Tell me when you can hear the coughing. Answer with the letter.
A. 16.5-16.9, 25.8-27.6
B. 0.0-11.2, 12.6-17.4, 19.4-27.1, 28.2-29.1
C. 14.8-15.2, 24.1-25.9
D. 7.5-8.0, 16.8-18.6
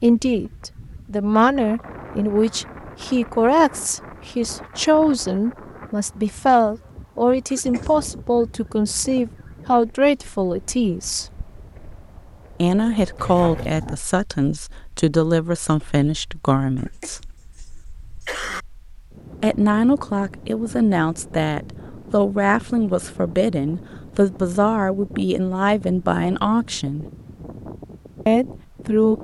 D.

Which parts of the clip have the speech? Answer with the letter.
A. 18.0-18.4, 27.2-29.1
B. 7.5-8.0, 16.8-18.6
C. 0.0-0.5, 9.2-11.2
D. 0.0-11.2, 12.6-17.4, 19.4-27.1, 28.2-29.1
D.